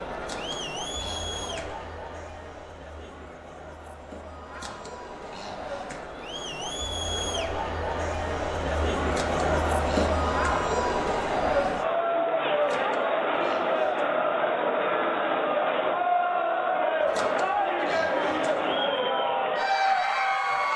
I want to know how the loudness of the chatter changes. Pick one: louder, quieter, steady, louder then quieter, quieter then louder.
louder.